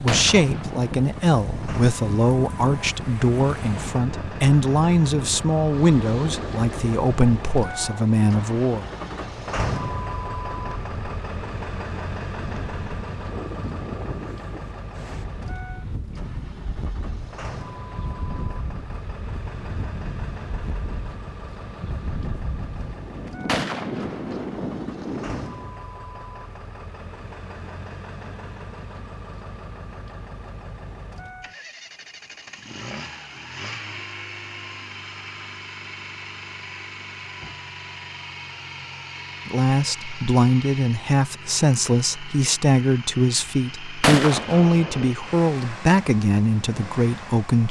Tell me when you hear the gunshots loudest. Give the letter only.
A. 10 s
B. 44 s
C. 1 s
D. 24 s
B.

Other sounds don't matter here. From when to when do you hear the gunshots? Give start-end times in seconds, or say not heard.
0.1-1.1, 23.4-24.5, 44.0-45.1.